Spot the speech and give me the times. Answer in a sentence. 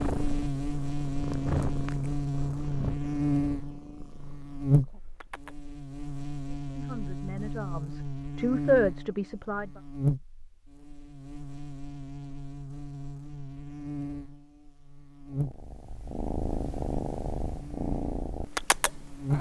You can hear the speech from 6.7 to 9.7 s.